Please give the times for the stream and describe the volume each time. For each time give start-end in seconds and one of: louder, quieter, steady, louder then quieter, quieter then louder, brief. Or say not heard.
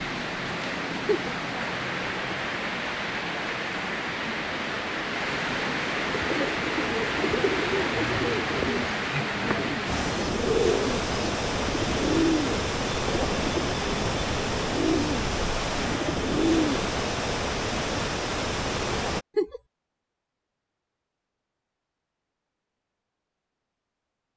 0.0-19.2 steady.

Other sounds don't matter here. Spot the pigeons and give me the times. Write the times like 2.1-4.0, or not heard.
6.0-16.9.